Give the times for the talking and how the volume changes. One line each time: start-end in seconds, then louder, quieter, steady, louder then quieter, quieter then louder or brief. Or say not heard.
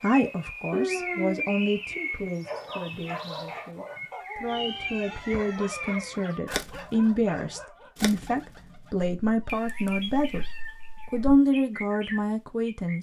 0.0-10.4 quieter then louder
11.1-12.9 brief.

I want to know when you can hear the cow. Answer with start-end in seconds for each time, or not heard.
not heard.